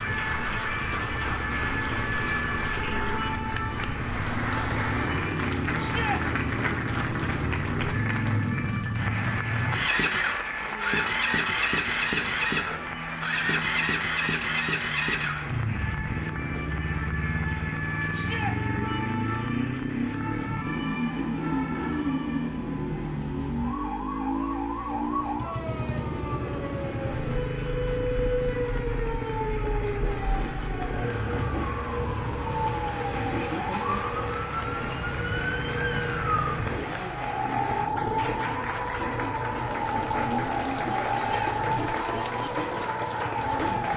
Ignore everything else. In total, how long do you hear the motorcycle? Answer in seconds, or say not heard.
44 s.